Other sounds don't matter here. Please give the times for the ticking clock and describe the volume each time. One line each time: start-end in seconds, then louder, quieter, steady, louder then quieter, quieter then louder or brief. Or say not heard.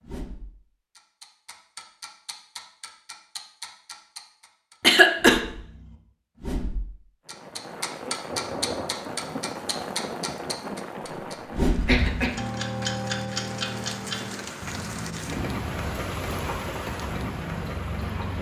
0.0-18.3 louder then quieter.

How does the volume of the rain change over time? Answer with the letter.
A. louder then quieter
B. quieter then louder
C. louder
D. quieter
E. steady
B.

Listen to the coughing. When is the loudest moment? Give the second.
5 s.